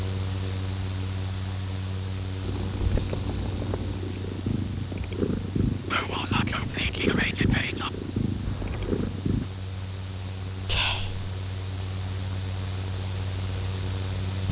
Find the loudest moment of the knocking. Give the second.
3 s.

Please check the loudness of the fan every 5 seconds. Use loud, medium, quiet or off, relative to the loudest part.
loud, medium, loud.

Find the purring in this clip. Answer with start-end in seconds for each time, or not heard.
2.4-9.5.